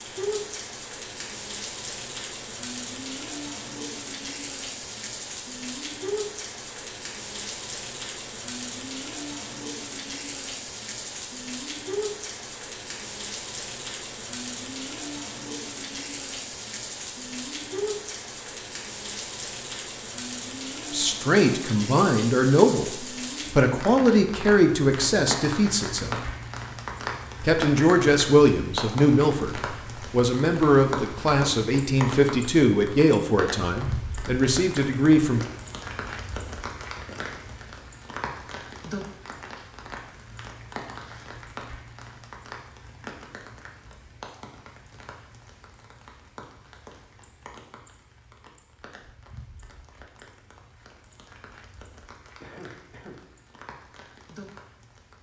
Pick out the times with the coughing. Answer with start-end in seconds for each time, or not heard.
52.4-53.2.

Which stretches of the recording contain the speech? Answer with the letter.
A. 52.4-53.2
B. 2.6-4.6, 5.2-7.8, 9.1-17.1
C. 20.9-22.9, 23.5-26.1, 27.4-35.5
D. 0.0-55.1
C.